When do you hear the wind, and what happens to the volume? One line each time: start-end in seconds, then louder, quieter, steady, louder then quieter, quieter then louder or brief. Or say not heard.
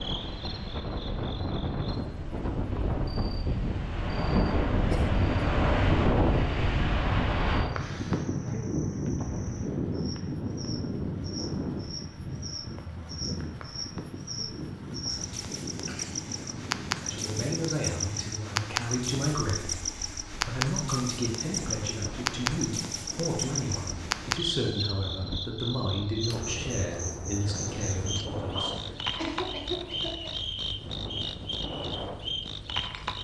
0.0-33.1 quieter.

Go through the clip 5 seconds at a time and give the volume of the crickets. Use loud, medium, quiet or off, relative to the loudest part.
quiet, quiet, medium, loud, loud, loud, loud.